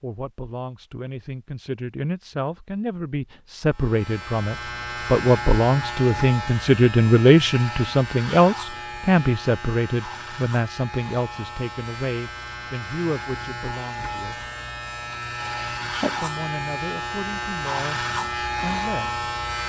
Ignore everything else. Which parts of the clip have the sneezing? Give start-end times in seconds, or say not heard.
15.4-16.2.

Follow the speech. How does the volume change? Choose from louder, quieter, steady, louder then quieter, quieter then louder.
louder then quieter.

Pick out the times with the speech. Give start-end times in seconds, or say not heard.
0.0-14.5, 16.1-19.2.